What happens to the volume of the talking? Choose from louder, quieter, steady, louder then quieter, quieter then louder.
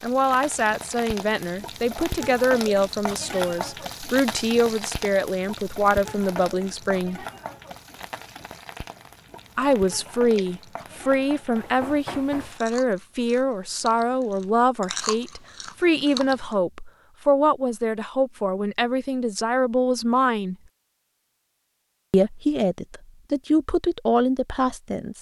steady.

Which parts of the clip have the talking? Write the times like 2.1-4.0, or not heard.
0.0-7.2, 9.6-20.6, 22.1-25.1.